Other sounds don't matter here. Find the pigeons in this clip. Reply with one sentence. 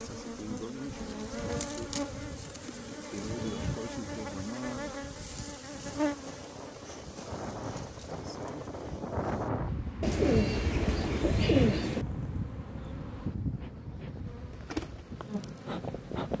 You can hear the pigeons from 2.5 to 3.8 s and from 10.0 to 12.1 s.